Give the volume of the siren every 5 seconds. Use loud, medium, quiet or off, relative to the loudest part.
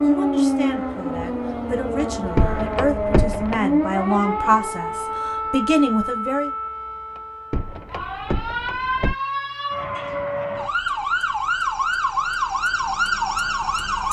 loud, medium, loud.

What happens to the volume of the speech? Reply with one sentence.
The loudness of the speech goes up.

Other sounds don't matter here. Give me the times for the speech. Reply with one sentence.
The speech can be heard from 0.0 to 6.5 s.